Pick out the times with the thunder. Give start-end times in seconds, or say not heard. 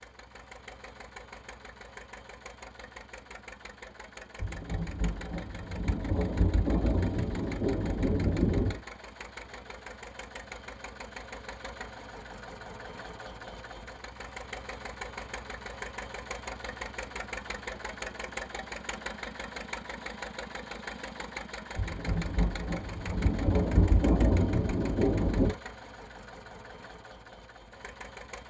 4.3-8.8, 21.8-25.6.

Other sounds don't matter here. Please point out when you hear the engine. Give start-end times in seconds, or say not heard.
0.0-28.4.